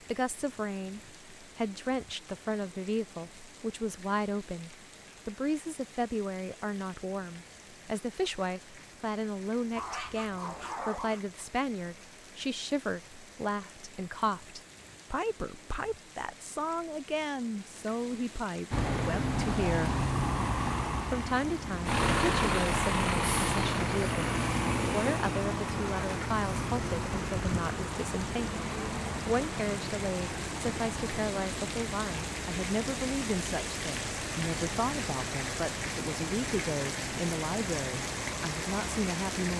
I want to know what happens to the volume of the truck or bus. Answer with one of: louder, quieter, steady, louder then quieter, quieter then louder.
quieter.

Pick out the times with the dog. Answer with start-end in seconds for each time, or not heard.
9.8-11.2.